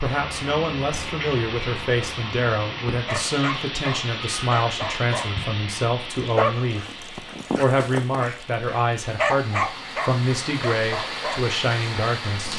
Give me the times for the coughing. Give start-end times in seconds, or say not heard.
9.2-9.8.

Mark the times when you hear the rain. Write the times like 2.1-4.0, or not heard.
0.0-12.5.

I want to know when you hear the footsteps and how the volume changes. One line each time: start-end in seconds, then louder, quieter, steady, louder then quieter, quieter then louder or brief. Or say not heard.
not heard.